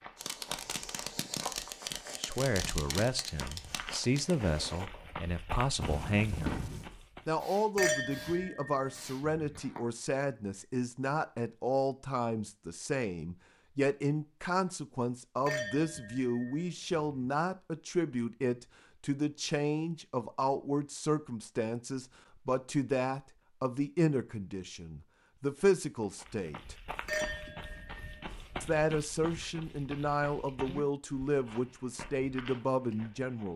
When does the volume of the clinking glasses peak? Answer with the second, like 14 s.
8 s.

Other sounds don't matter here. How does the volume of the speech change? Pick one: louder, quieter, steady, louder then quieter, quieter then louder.
steady.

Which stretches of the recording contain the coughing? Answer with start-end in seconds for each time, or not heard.
5.8-6.9.